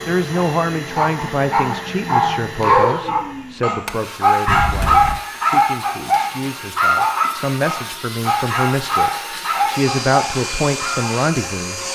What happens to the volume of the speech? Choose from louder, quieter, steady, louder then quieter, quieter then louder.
quieter then louder.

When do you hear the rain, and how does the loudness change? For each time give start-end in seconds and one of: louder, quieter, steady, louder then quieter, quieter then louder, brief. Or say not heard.
not heard.